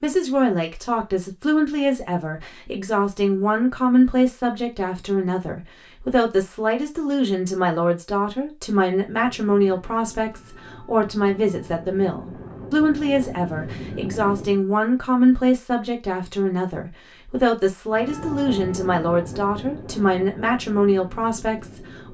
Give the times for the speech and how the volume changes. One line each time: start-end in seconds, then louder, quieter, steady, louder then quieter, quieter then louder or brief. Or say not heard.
0.0-22.1 steady.